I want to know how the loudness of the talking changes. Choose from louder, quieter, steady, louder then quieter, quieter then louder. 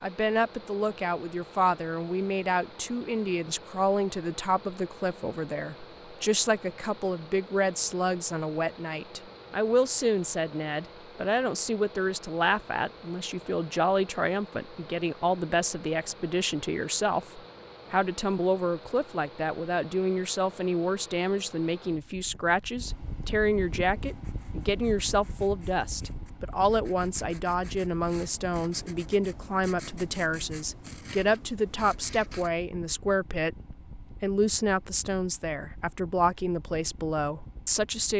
steady.